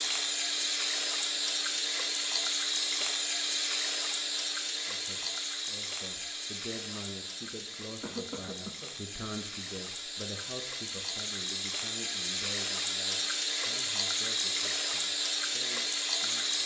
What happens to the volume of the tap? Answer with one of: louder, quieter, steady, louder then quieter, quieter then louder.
quieter then louder.